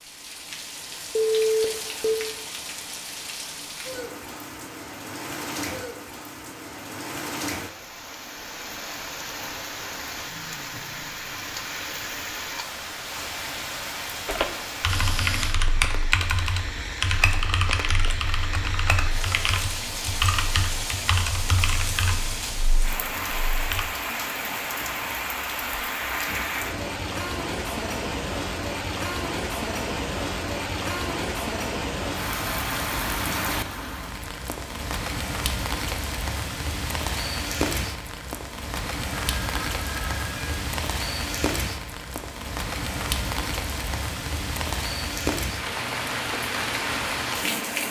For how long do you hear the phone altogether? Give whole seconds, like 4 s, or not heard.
2 s.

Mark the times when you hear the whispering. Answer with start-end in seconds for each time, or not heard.
not heard.